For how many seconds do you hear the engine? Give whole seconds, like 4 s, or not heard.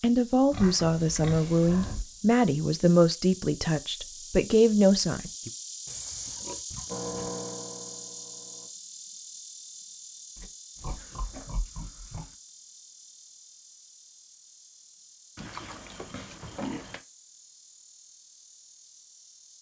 2 s.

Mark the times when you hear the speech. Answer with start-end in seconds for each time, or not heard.
0.0-5.5.